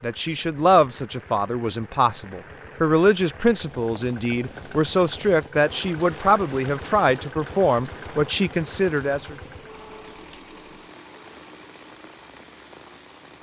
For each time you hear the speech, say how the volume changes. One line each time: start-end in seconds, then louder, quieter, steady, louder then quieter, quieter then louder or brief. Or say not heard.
0.0-9.3 steady.